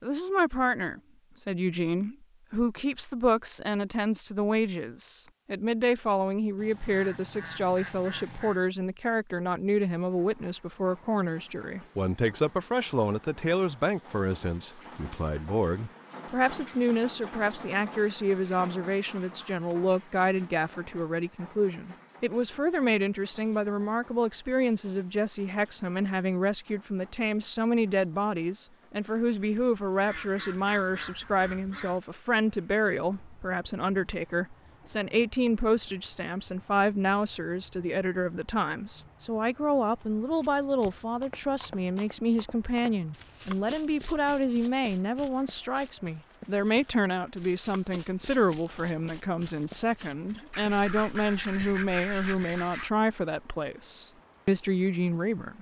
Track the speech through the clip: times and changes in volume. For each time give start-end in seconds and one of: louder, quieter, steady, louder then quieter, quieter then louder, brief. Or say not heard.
0.0-55.5 steady.